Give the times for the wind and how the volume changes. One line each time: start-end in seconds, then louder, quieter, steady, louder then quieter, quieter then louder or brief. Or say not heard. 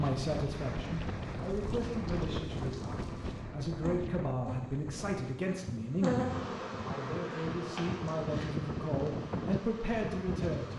0.0-10.7 quieter then louder.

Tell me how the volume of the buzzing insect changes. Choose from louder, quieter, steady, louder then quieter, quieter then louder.
louder then quieter.